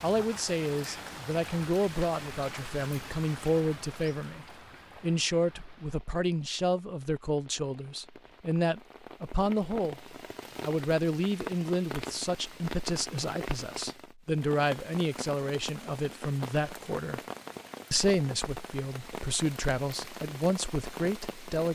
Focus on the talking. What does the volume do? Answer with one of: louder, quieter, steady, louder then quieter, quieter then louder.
steady.